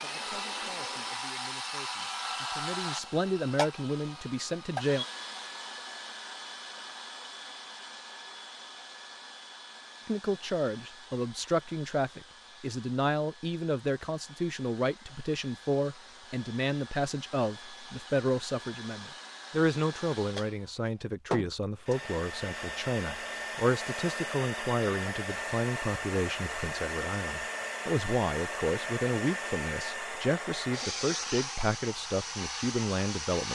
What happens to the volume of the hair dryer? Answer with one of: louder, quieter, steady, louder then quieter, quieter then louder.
quieter then louder.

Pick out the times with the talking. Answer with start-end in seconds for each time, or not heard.
0.0-5.0, 10.1-33.5.